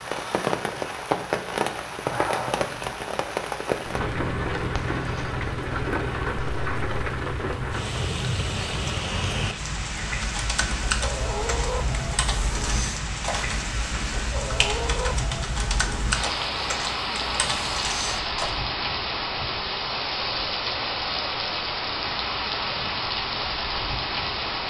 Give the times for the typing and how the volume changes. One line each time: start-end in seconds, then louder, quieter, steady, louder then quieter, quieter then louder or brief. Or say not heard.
10.2-18.5 steady.